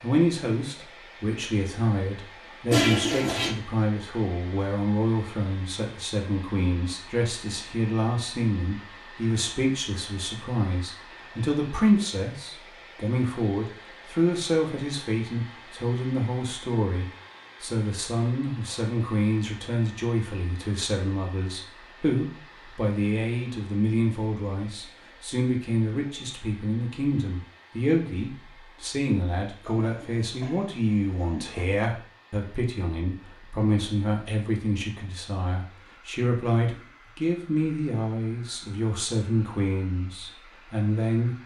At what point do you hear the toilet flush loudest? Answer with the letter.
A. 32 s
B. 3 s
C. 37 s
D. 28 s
B.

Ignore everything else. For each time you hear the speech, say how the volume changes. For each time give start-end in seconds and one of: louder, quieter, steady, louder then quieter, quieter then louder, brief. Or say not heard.
0.0-41.4 steady.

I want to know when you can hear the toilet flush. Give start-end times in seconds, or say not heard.
2.7-3.5, 29.6-31.6.